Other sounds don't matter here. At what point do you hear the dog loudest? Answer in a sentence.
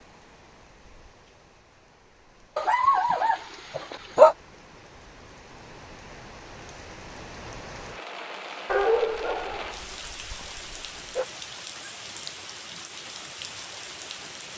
The loudest moment of the dog is at 4 seconds.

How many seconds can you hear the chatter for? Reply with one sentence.
The chatter can't be heard in this clip.